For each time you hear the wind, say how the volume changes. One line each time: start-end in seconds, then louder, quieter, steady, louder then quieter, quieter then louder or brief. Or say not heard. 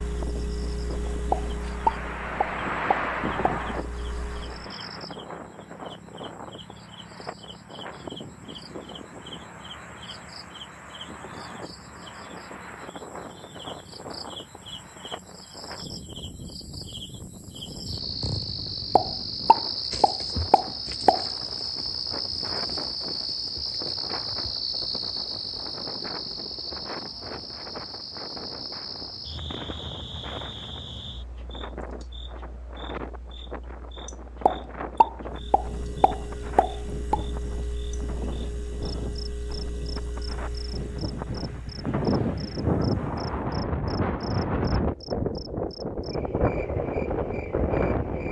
0.0-48.2 quieter then louder.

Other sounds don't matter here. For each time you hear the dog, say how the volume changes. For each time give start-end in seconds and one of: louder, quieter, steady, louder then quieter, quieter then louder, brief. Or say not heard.
not heard.